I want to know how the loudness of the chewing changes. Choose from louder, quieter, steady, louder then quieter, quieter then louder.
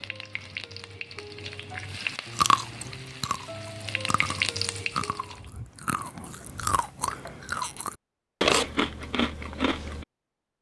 louder.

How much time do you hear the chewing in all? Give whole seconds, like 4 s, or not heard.
8 s.